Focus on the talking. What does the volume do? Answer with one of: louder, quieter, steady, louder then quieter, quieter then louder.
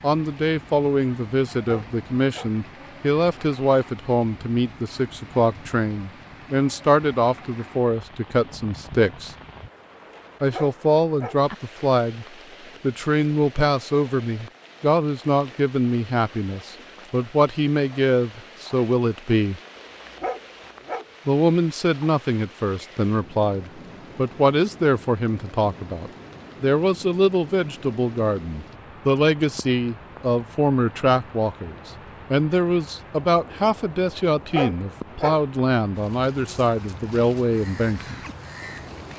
steady.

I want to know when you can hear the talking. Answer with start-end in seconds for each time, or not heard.
0.0-9.3, 10.4-19.6, 21.2-38.1.